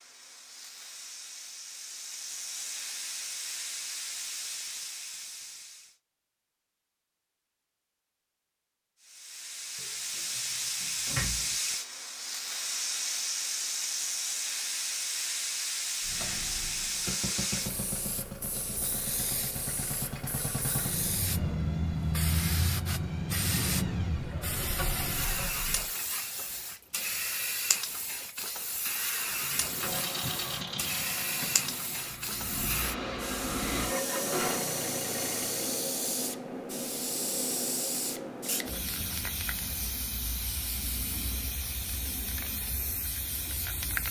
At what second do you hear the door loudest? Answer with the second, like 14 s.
11 s.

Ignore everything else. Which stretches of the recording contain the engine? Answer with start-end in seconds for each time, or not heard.
16.0-25.9, 29.8-35.9.